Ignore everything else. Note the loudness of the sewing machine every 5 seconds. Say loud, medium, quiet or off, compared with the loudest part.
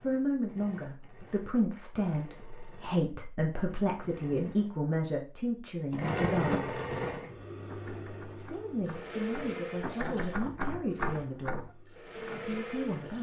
quiet, loud, medium.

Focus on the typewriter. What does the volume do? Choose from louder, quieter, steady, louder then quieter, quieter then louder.
louder then quieter.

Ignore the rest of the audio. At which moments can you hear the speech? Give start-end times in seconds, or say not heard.
0.0-6.8, 8.3-13.1.